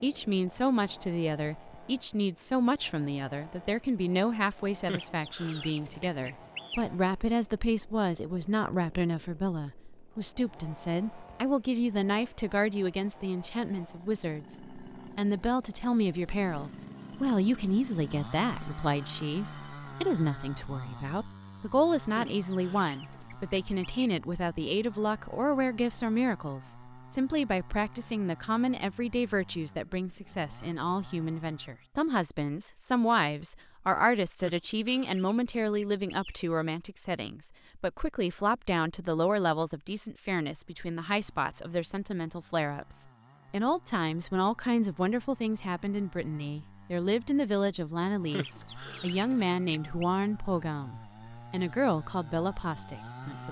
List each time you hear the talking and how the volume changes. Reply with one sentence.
You can hear the talking from 0.0 to 53.4 s, at a steady volume.